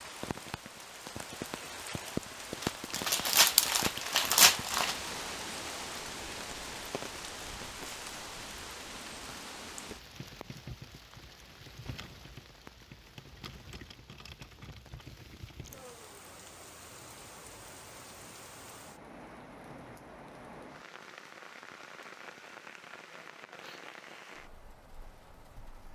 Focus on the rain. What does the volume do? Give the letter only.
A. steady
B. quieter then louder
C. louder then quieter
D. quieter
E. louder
D.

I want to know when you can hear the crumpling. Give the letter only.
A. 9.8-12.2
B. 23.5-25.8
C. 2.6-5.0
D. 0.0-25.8
C.